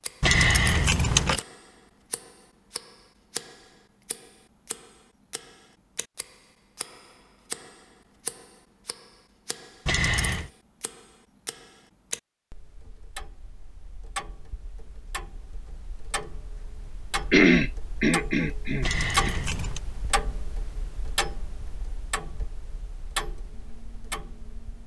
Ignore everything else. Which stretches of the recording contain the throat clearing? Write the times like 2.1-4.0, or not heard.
17.3-19.3.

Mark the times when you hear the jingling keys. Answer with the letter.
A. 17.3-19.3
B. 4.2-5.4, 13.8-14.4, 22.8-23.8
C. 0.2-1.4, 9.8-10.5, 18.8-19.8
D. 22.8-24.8
C.